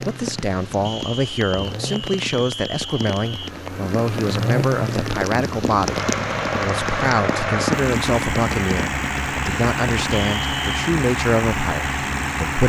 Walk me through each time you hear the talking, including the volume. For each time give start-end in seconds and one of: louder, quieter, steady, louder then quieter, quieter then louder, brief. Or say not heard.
0.1-12.6 steady.